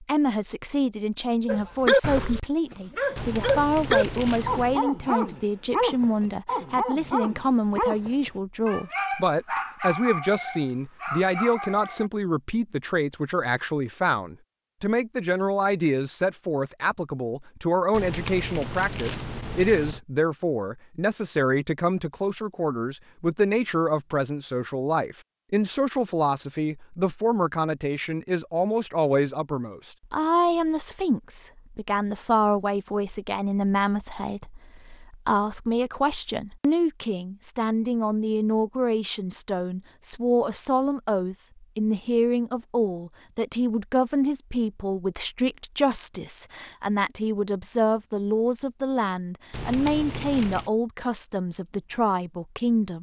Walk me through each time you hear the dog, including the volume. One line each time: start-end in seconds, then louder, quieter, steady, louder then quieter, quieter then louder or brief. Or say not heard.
1.4-12.1 quieter.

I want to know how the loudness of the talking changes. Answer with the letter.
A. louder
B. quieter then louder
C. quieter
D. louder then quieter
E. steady
E.